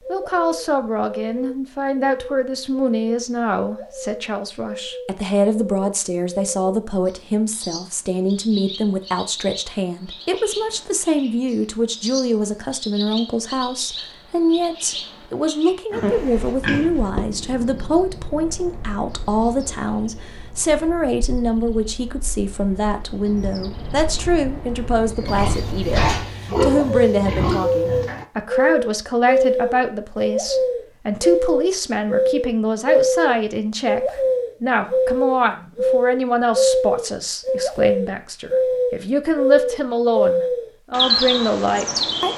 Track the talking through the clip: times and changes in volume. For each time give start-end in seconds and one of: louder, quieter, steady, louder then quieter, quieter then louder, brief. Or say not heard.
0.1-42.3 steady.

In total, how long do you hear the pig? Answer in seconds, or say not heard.
4 s.